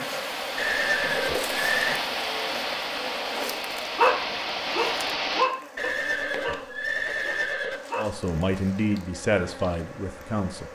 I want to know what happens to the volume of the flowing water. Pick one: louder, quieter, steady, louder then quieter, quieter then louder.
steady.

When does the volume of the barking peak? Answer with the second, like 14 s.
4 s.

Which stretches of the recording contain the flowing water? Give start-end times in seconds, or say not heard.
0.0-5.5.